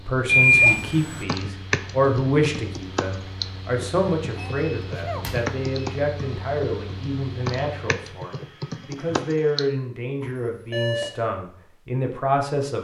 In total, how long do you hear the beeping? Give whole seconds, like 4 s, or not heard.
3 s.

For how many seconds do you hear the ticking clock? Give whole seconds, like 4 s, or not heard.
not heard.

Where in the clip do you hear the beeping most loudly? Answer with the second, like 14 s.
1 s.